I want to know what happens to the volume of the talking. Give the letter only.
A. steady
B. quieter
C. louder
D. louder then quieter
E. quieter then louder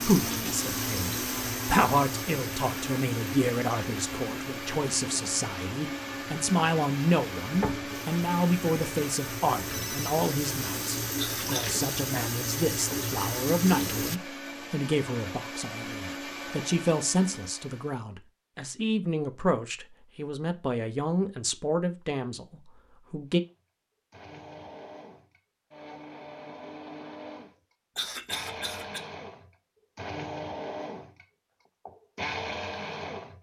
A.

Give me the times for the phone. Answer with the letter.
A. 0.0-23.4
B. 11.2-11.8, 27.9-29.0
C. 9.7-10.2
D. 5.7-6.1
C.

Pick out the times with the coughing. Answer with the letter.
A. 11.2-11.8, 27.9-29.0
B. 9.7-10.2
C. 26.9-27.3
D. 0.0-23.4
A.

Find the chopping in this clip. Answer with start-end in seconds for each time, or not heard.
not heard.